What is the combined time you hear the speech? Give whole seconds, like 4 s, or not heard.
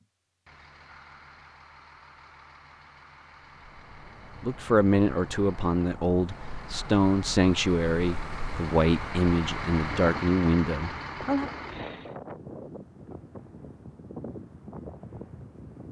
7 s.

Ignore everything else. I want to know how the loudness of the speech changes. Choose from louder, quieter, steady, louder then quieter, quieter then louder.
steady.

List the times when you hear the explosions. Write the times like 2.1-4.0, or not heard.
not heard.